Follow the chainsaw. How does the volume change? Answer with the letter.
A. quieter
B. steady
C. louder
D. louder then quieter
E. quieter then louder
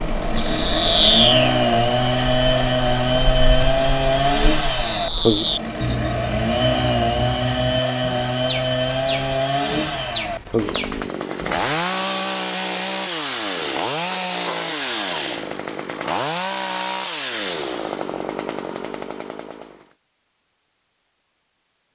A.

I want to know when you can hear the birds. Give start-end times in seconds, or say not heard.
0.0-11.7.